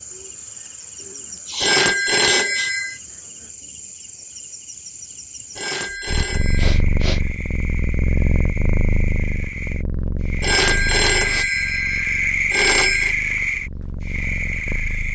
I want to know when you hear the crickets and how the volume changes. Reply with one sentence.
The crickets can be heard from 0.0 to 15.0 s, getting louder.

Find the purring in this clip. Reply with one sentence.
You can hear the purring from 6.0 to 15.0 s.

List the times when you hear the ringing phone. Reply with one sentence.
You can hear the ringing phone from 1.6 to 3.0 s, from 5.5 to 6.8 s and from 10.4 to 13.2 s.